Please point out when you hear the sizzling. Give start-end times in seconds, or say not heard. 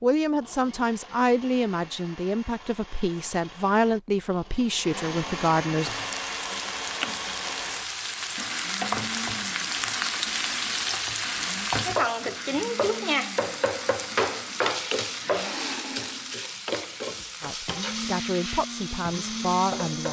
5.8-20.0.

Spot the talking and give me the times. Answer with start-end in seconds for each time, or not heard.
0.0-5.9, 17.4-20.0.